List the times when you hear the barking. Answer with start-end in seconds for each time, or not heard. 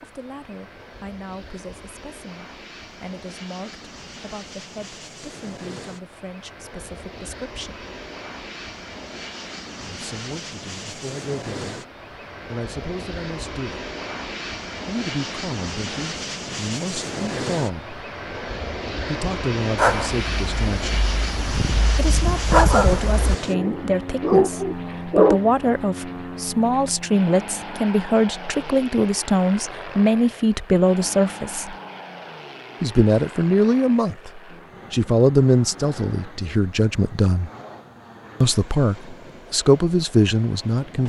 19.8-25.4.